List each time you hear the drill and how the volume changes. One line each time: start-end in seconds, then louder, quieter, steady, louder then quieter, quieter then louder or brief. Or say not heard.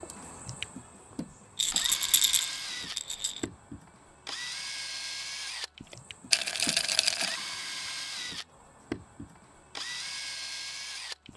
0.0-11.3 steady.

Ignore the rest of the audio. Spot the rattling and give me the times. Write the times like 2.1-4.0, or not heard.
1.6-3.5, 6.3-7.4.